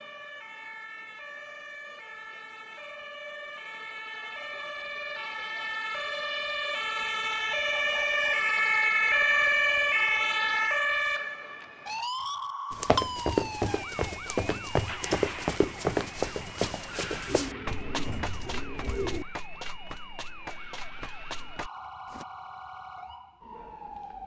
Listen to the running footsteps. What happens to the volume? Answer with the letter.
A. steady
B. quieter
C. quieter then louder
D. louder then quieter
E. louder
B.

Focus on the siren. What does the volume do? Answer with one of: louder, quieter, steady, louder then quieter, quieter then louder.
louder then quieter.